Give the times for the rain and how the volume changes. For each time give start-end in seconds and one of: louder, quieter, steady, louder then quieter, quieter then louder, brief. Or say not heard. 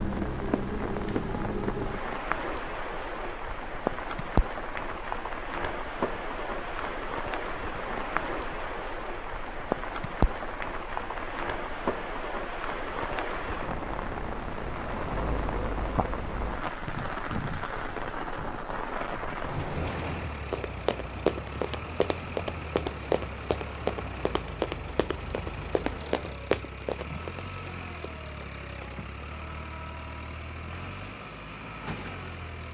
0.0-26.4 quieter.